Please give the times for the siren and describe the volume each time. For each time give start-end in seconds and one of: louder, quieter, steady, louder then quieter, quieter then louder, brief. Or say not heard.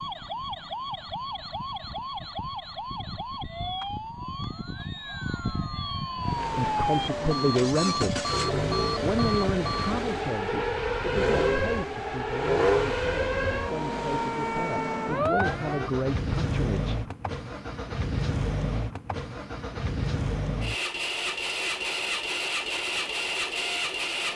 0.0-15.9 louder.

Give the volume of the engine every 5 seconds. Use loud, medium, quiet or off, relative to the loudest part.
off, loud, loud, loud, loud.